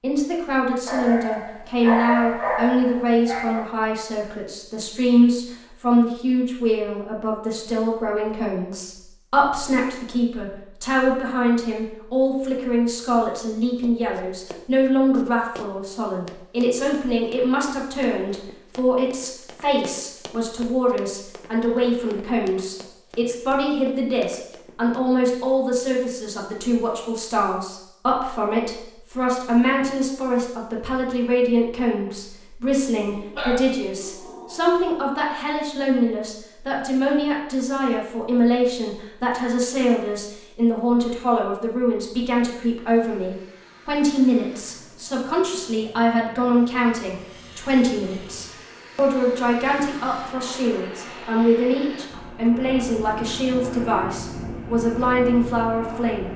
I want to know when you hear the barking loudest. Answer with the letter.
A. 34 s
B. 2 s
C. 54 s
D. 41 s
B.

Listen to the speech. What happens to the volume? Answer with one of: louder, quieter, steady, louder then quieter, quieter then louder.
steady.